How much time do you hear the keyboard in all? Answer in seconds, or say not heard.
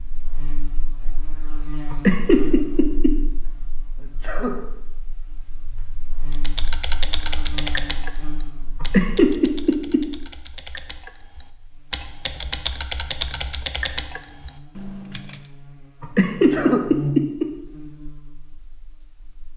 9 s.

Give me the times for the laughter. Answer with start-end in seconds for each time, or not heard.
1.9-3.1, 8.8-10.0, 16.0-17.4.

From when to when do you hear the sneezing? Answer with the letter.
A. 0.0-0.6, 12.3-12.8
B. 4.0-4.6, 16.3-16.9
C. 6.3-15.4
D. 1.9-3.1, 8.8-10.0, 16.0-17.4
B.